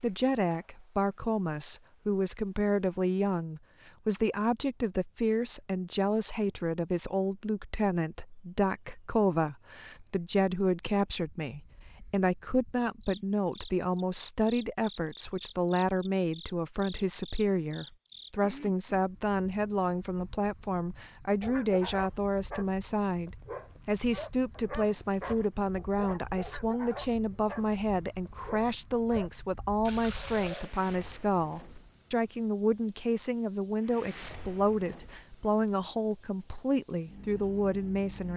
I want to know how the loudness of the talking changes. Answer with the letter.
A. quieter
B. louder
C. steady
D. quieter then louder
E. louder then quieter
C.